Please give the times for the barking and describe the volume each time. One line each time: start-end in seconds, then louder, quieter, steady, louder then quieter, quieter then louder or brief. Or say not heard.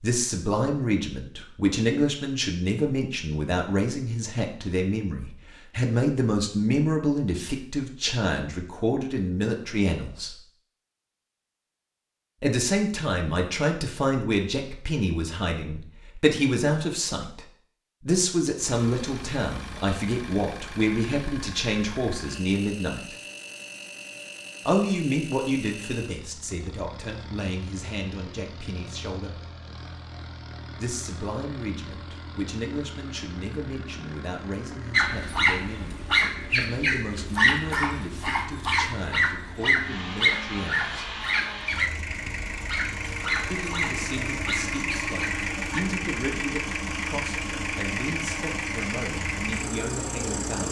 34.9-45.8 quieter.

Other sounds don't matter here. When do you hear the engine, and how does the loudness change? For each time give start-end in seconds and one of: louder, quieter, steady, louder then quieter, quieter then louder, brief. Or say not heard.
18.6-50.6 louder.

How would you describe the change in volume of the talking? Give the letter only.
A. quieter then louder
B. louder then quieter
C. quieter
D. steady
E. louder
C.